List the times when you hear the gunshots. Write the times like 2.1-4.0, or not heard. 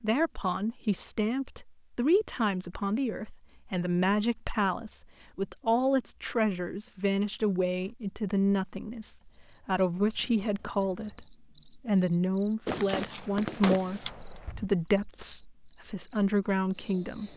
12.7-14.7.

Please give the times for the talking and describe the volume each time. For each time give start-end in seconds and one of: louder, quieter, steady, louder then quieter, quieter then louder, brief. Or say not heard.
0.0-17.3 steady.